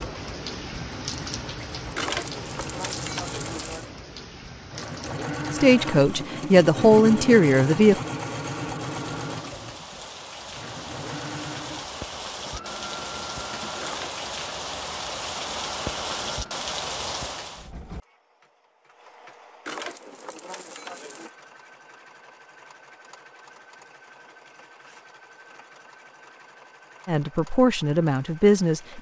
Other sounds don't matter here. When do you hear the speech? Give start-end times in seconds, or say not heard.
5.5-8.0, 27.1-28.9.